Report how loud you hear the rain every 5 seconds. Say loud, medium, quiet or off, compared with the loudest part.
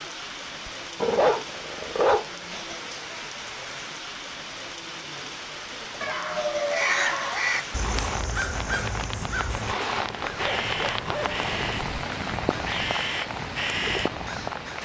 medium, loud, loud.